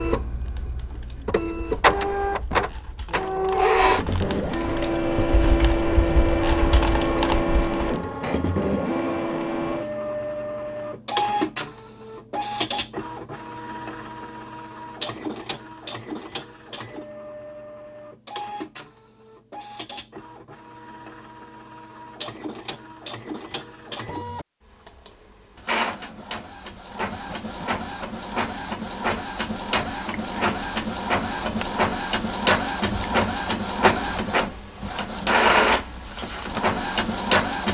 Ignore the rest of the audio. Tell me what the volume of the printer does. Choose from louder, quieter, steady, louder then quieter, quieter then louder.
quieter then louder.